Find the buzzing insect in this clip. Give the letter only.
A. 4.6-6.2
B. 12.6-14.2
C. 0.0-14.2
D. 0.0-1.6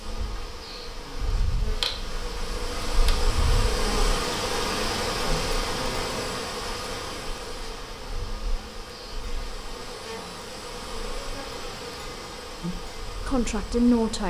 C.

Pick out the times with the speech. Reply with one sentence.
You can hear the speech from 12.6 to 14.2 s.